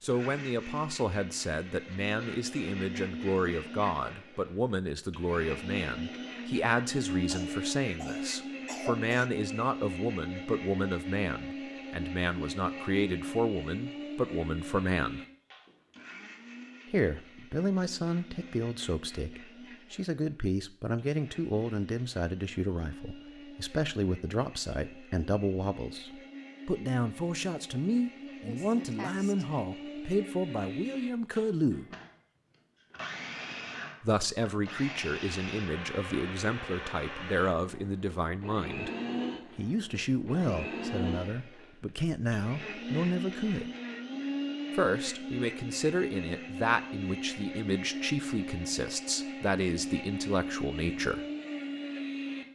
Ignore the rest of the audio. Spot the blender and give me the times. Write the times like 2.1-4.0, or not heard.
0.1-52.5.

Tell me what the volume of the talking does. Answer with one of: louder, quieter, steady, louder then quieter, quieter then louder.
steady.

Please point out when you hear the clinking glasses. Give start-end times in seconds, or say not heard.
not heard.